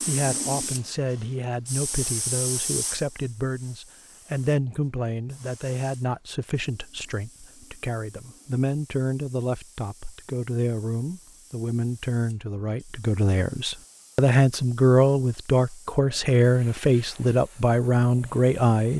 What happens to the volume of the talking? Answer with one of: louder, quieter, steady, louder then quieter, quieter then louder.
louder.